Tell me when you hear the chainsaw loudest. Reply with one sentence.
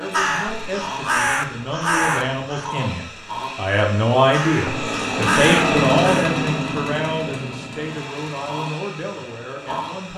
The volume of the chainsaw peaks at 6 seconds.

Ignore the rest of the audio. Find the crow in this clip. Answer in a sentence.
You can hear the crow from 0.0 to 2.8 s and from 4.2 to 6.3 s.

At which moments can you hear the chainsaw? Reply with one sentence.
The chainsaw can be heard from 0.0 to 10.1 s.